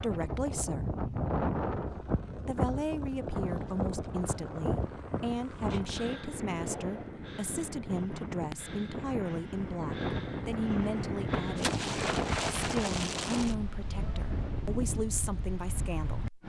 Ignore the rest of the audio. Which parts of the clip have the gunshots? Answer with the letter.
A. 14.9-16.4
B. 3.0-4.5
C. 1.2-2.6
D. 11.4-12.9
D.